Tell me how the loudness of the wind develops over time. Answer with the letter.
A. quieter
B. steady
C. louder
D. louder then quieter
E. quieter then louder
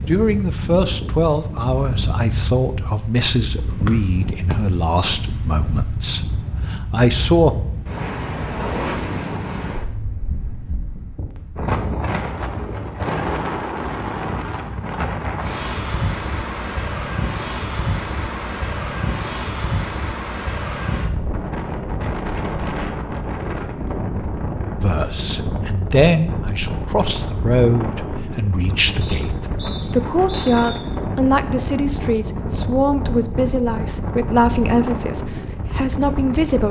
B.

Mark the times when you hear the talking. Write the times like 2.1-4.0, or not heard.
0.1-7.5, 24.8-36.6.